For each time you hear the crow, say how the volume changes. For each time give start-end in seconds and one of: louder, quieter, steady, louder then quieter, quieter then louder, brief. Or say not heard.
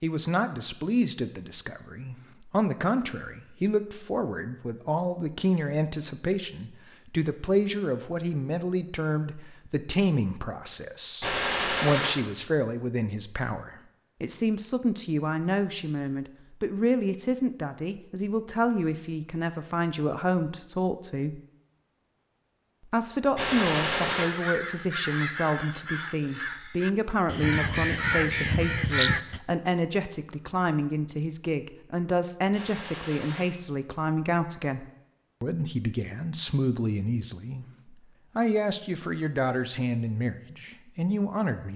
24.1-29.4 louder.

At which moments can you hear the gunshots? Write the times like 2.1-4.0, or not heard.
11.2-12.1, 23.4-24.2, 32.5-33.5.